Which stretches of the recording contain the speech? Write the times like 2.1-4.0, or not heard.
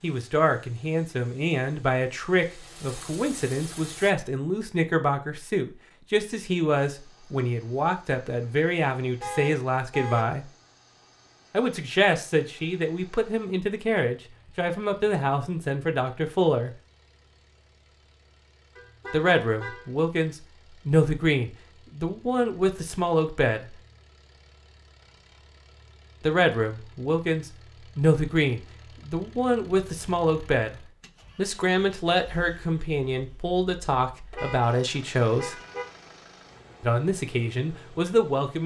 0.0-10.4, 11.5-16.7, 19.1-23.8, 26.2-30.8, 31.4-35.5, 36.8-38.6.